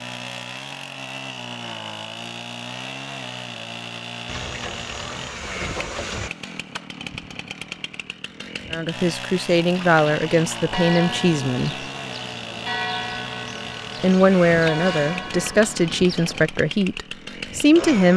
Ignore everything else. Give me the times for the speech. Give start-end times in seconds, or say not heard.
8.7-11.8, 14.0-18.1.